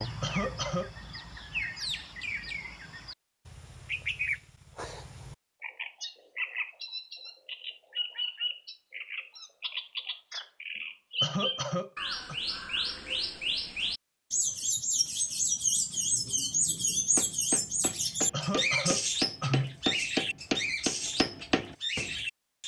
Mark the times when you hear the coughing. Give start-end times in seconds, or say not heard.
0.2-0.9, 11.2-12.3, 18.3-19.8.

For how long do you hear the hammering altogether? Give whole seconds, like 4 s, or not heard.
5 s.